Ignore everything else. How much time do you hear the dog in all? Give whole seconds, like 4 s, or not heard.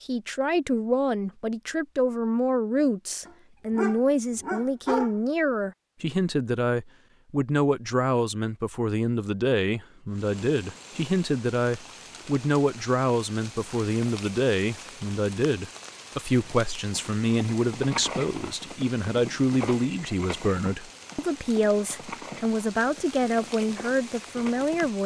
2 s.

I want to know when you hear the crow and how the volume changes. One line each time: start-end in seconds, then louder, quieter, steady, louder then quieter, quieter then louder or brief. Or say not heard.
not heard.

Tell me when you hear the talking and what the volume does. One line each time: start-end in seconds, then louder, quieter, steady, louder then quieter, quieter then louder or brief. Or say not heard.
0.0-25.0 steady.